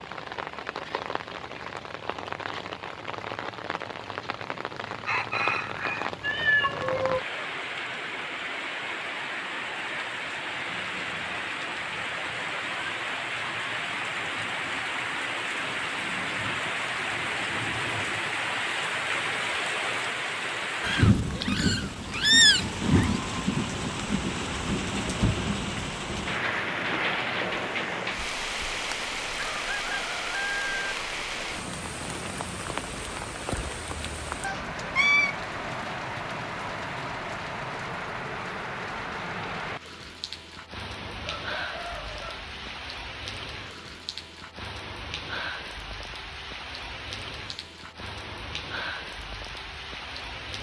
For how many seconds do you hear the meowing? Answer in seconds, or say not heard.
4 s.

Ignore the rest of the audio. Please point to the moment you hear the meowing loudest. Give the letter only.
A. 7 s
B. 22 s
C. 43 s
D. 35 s
B.